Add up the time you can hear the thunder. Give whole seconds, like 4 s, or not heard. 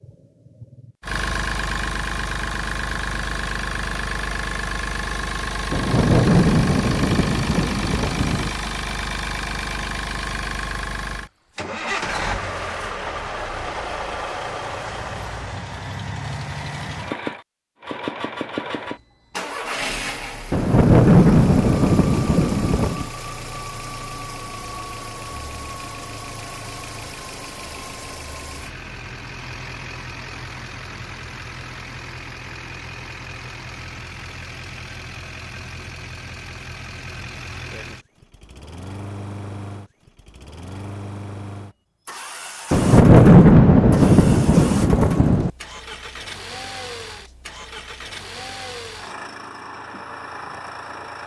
8 s.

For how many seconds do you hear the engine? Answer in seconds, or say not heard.
51 s.